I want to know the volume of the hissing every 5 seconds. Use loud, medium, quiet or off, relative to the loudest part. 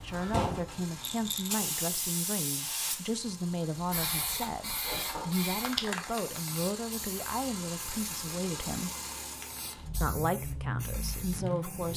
loud, loud, quiet.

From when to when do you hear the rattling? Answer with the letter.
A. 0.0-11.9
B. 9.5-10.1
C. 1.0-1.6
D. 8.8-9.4
C.